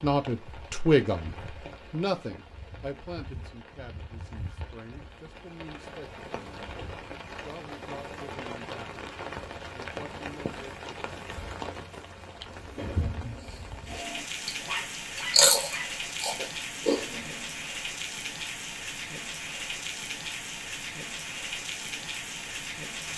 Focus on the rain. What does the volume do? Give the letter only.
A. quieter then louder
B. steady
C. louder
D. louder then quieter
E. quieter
C.